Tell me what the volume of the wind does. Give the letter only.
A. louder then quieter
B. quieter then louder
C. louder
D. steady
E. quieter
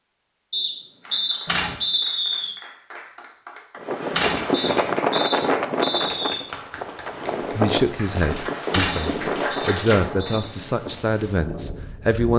E.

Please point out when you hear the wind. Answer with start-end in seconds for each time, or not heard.
3.8-12.2.